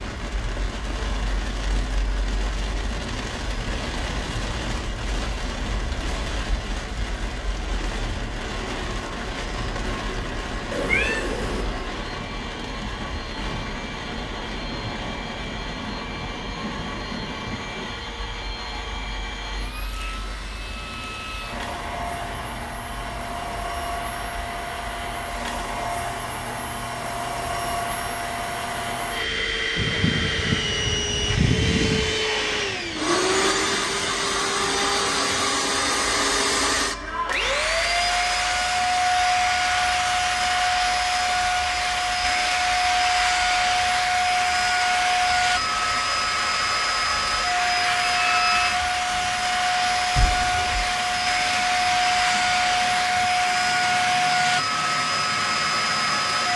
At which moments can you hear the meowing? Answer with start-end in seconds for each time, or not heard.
10.7-11.7, 29.8-32.3, 50.1-50.9.